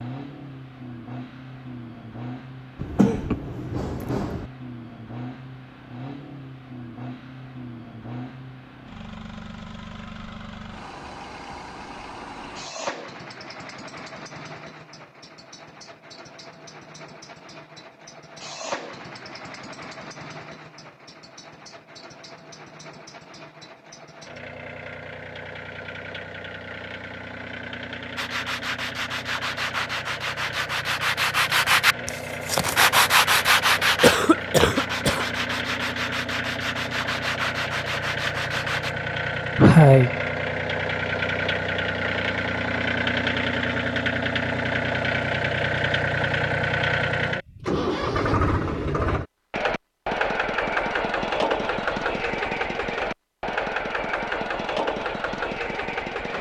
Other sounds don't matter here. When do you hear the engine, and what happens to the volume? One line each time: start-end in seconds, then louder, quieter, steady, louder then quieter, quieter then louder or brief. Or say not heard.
0.0-56.3 louder.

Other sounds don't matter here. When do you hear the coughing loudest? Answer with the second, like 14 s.
40 s.